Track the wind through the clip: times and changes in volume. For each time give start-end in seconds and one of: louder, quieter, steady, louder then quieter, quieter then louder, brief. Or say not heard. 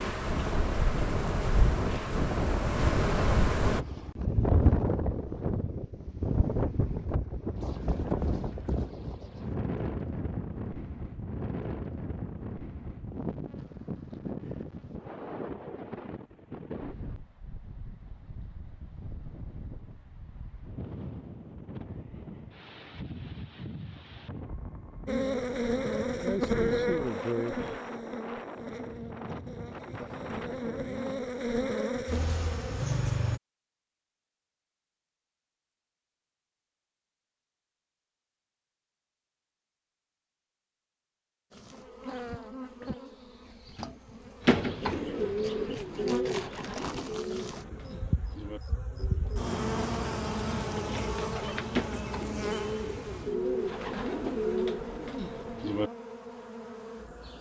0.0-31.2 quieter.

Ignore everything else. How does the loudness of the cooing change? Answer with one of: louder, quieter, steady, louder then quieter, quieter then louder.
quieter then louder.